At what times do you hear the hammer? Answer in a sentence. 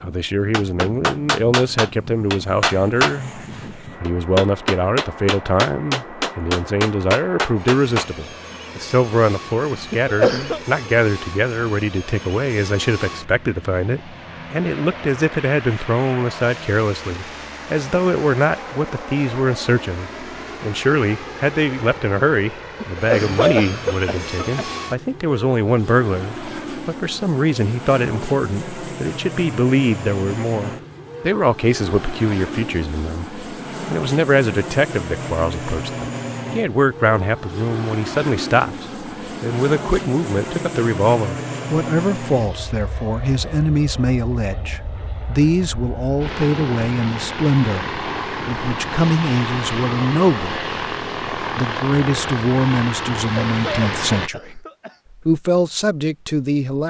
You can hear the hammer from 0.5 to 8.1 s.